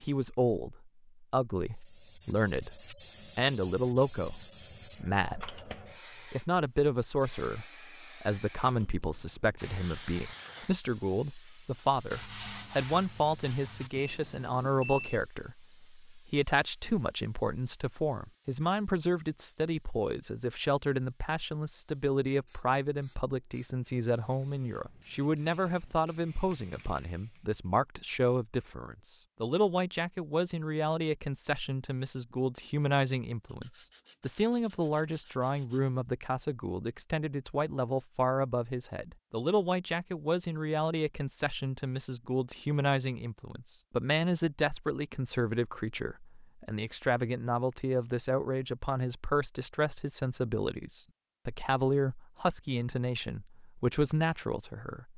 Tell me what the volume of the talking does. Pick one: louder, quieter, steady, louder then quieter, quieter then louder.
steady.